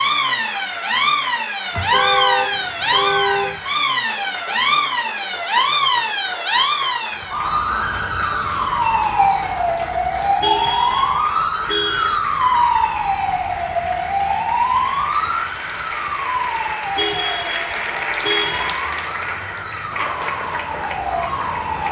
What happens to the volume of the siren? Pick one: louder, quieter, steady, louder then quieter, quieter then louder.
quieter.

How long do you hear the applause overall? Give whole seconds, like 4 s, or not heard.
22 s.